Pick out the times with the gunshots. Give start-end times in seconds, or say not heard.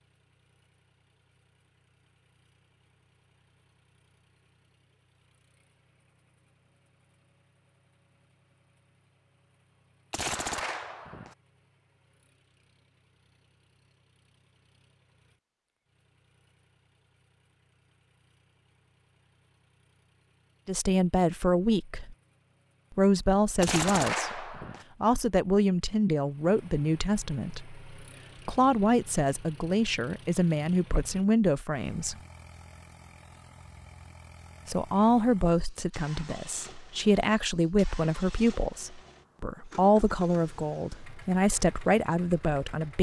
10.1-11.3, 23.6-24.9.